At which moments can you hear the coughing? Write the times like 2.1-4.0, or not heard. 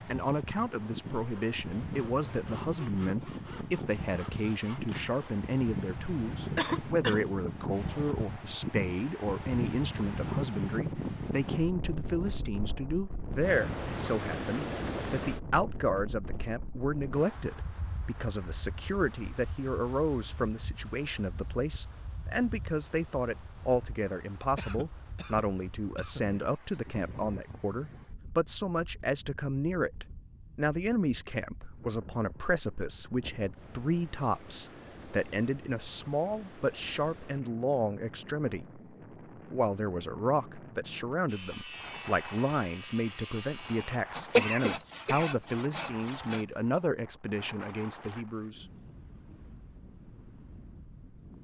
6.5-7.2, 24.6-26.2, 44.3-45.4.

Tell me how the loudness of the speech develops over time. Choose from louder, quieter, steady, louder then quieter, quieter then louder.
steady.